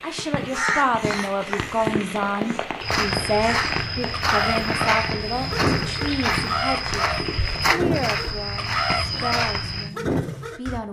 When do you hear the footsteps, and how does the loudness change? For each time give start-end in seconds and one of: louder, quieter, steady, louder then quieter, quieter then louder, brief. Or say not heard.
2.8-9.9 steady.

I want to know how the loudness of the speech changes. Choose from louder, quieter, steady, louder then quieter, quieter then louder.
quieter.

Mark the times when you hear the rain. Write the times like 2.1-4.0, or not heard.
0.0-7.8.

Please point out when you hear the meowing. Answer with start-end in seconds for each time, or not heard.
not heard.